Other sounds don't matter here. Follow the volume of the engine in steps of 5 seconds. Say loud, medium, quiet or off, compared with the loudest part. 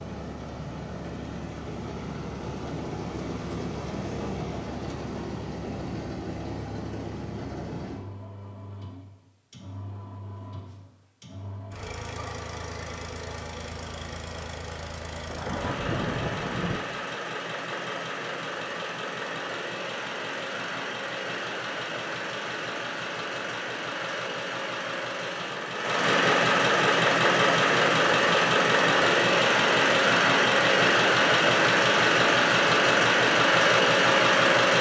quiet, quiet, quiet, quiet, quiet, loud, loud.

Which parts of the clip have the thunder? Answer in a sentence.
The thunder can be heard from 15.2 to 16.8 s.